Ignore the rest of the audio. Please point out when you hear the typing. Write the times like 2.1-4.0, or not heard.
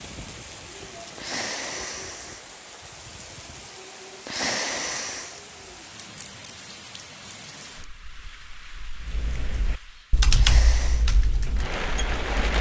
9.0-12.5.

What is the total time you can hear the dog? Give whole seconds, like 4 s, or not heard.
not heard.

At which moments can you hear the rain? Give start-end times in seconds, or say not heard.
0.0-12.5.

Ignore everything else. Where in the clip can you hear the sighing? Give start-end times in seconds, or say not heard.
1.1-2.4, 4.2-5.4, 10.3-11.1.